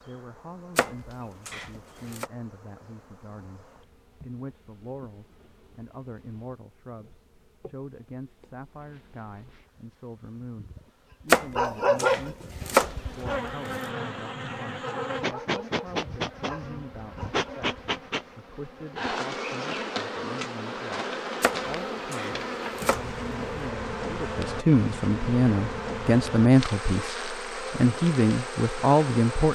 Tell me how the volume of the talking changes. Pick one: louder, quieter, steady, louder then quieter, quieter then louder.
louder.